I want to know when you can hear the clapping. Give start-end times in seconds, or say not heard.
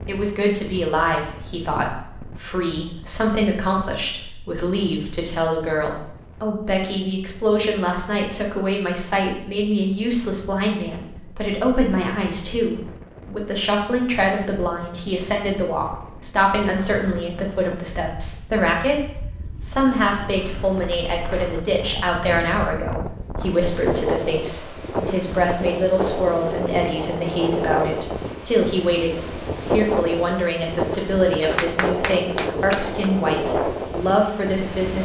31.4-32.9.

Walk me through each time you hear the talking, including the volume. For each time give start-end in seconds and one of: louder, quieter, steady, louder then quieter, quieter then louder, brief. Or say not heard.
0.1-35.0 steady.